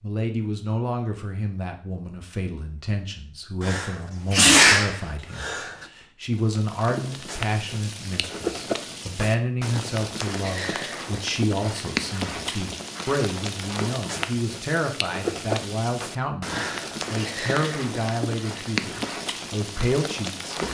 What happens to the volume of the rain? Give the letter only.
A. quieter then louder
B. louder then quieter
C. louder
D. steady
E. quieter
D.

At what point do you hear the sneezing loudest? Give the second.
5 s.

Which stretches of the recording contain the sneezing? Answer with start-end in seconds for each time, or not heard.
3.6-5.7, 16.4-17.3.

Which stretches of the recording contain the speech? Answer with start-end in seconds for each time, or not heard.
0.0-20.6.